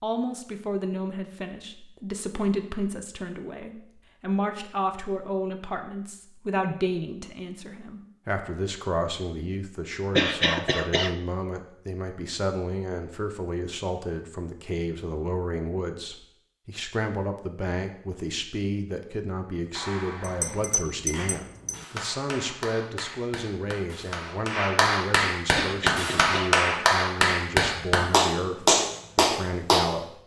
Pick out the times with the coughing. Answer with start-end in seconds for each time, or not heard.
10.2-11.2, 25.6-26.6.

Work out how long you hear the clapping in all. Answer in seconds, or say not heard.
10 s.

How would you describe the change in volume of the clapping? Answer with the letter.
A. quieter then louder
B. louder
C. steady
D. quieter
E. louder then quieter
B.